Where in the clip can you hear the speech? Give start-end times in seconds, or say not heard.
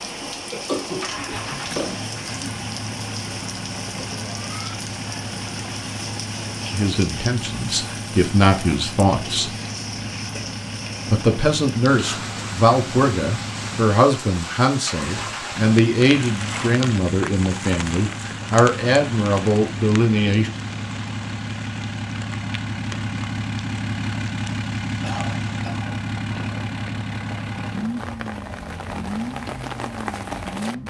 6.7-9.6, 11.1-20.5.